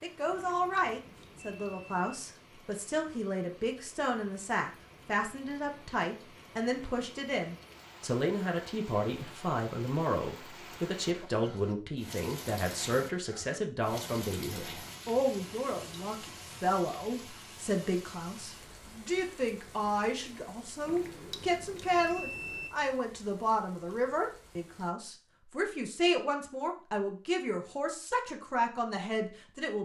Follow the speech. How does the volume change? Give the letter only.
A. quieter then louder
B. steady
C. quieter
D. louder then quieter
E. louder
B.